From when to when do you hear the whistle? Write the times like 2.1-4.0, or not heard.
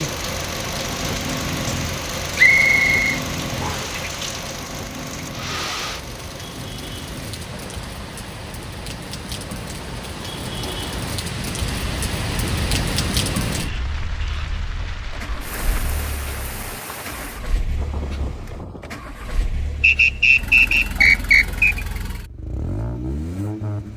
2.4-4.0, 19.8-21.8.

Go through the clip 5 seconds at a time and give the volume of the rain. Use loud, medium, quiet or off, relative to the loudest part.
medium, medium, loud, medium, off.